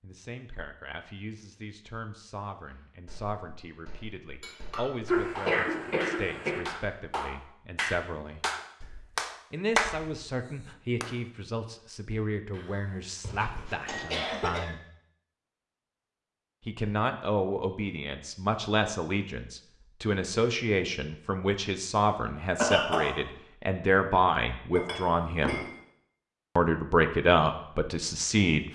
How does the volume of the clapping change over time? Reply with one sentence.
The loudness of the clapping goes up.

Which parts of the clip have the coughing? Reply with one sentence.
You can hear the coughing from 5.0 to 6.6 s, from 12.5 to 14.7 s and from 22.6 to 23.1 s.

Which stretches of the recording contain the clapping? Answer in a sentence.
The clapping can be heard from 3.0 to 11.2 s.